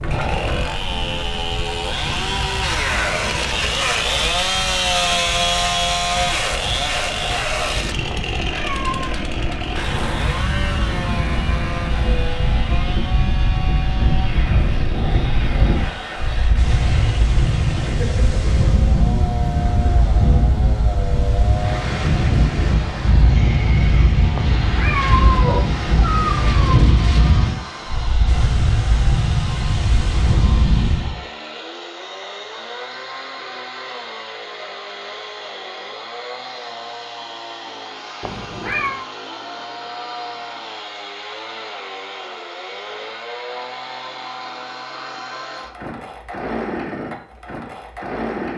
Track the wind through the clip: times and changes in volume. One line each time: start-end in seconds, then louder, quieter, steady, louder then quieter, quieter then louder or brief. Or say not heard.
0.0-31.1 louder.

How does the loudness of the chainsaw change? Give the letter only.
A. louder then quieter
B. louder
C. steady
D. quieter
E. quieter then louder
D.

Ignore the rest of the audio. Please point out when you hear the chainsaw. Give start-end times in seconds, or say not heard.
0.0-48.5.